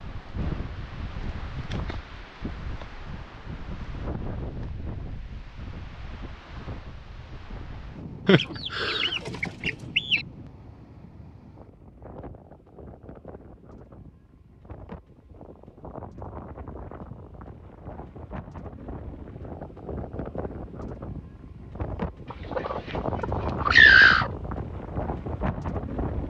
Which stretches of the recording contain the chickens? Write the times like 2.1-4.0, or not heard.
8.2-10.2, 22.3-24.3.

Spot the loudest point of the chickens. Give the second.
24 s.